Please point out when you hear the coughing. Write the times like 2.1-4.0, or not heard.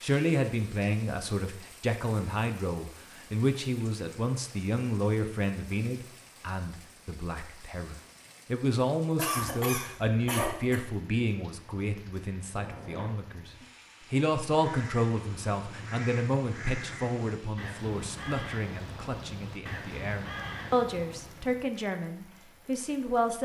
9.2-10.8.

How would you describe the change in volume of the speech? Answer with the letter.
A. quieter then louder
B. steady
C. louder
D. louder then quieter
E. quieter
B.